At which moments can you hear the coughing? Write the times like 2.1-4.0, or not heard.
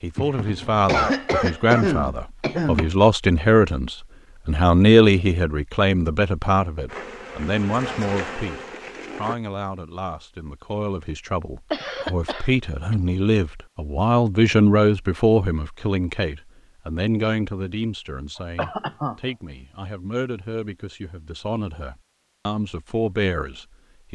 0.1-2.9, 11.7-12.9, 18.6-19.1.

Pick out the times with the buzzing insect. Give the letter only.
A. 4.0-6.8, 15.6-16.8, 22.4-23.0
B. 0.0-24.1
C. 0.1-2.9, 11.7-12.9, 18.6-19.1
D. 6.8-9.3
D.